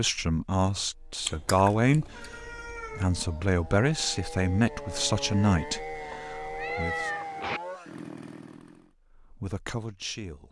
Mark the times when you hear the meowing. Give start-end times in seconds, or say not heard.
1.2-3.0, 6.1-7.6.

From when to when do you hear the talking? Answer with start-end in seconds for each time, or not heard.
0.0-7.1, 9.0-10.4.